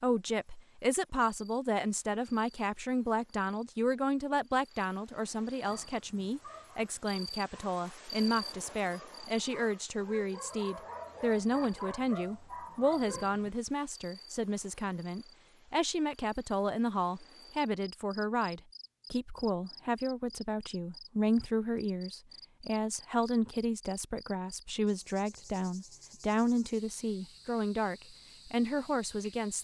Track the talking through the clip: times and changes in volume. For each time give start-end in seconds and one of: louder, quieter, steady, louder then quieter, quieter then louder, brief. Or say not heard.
0.0-29.5 steady.